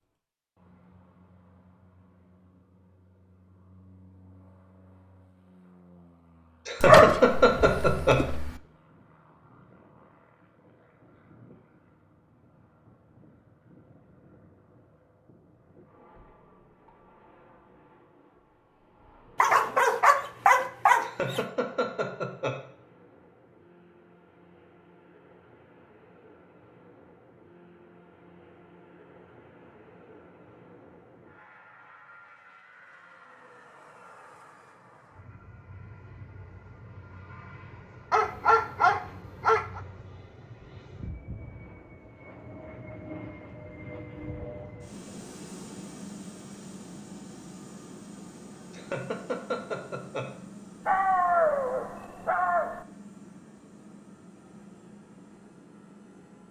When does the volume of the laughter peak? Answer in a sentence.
The volume of the laughter peaks at 7 seconds.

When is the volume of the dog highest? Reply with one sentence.
The volume of the dog peaks at 7 seconds.